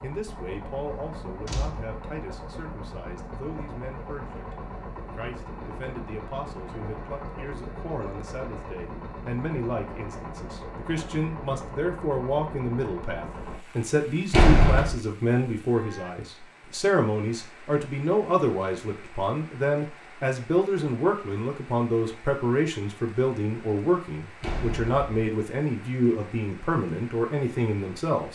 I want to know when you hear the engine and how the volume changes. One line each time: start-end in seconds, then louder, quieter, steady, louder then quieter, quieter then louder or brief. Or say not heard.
0.0-13.6 steady.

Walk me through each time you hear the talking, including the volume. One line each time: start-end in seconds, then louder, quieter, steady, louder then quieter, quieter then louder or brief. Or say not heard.
0.0-28.3 louder.